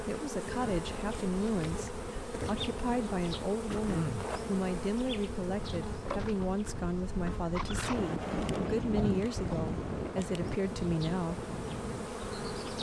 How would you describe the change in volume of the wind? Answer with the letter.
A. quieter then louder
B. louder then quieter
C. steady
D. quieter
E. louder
B.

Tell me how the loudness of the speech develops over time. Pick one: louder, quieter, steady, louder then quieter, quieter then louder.
steady.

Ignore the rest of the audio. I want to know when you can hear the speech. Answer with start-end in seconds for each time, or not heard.
0.0-11.4.